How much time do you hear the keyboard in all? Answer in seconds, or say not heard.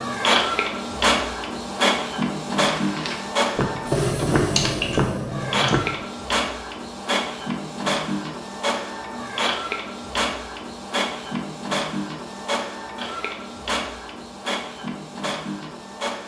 2 s.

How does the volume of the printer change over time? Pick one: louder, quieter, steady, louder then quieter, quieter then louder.
quieter.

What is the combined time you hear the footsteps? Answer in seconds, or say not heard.
3 s.